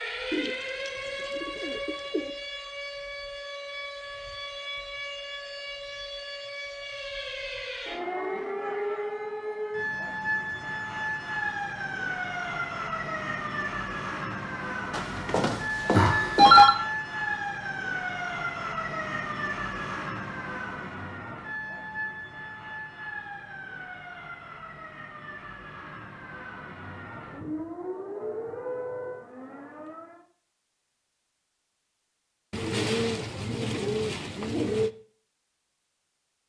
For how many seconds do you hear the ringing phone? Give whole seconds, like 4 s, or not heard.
2 s.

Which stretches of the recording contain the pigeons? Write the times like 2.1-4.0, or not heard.
0.3-2.4, 32.5-34.9.